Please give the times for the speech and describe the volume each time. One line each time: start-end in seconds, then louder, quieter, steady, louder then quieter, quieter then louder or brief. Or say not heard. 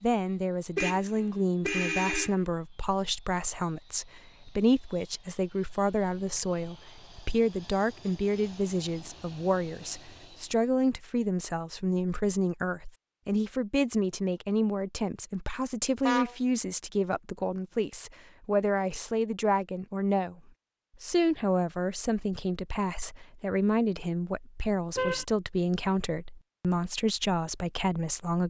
0.0-20.4 steady
21.0-28.4 steady.